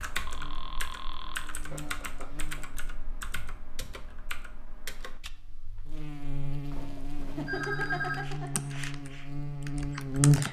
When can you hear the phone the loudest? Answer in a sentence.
The loudest moment of the phone is at 8 seconds.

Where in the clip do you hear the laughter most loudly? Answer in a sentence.
The loudest moment of the laughter is at 8 seconds.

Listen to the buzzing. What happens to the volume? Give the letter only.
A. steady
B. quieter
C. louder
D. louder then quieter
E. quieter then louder
E.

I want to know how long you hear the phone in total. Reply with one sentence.
You can hear the phone for 3 seconds altogether.